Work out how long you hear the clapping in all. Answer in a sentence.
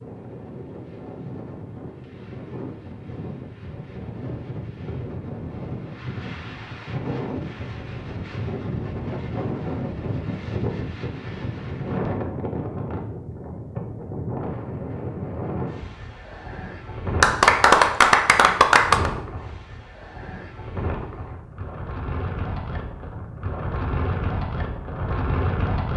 The clapping can be heard for 2 seconds in total.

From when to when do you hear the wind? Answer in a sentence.
The wind can be heard from 0.0 to 25.9 s.